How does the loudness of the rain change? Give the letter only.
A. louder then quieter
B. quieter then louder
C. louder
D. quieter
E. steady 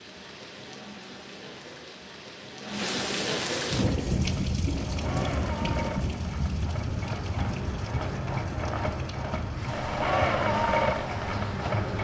A.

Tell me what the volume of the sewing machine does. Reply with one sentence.
The volume of the sewing machine goes up.